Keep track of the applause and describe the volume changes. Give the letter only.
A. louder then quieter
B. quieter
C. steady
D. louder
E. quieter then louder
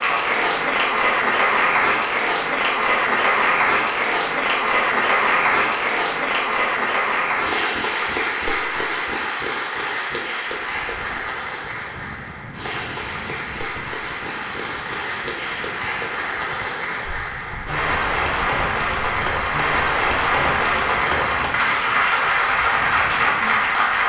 E.